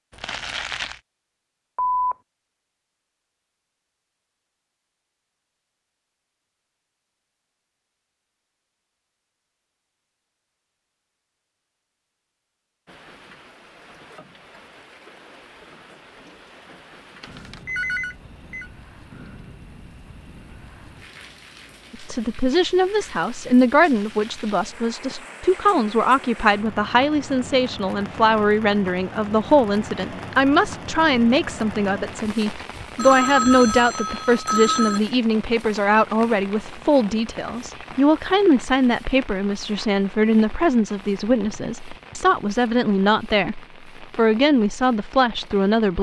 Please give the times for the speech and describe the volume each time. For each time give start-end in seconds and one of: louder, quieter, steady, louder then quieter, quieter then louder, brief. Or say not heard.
21.9-45.9 steady.